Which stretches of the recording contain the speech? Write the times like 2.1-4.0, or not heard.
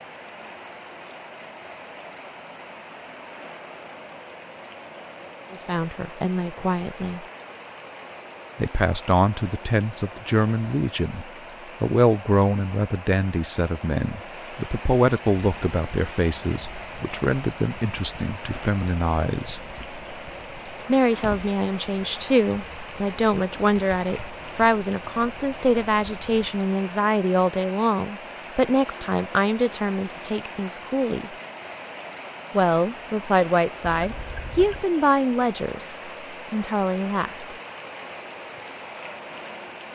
5.5-7.2, 8.6-19.7, 20.9-31.3, 32.5-37.5.